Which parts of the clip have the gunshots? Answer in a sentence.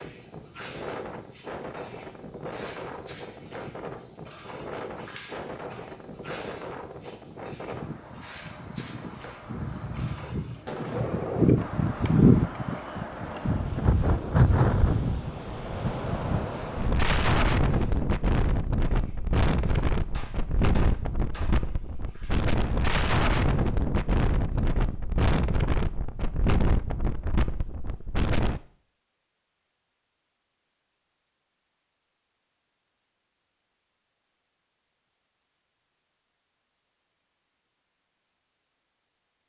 The gunshots can be heard from 9.4 to 11.4 s and from 20.1 to 21.6 s.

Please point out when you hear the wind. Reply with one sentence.
You can hear the wind from 0.0 to 28.6 s.